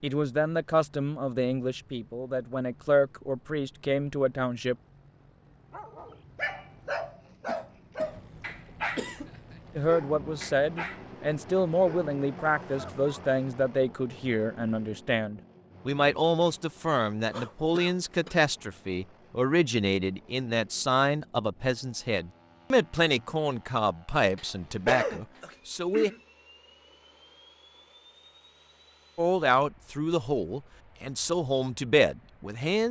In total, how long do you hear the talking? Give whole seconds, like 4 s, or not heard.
25 s.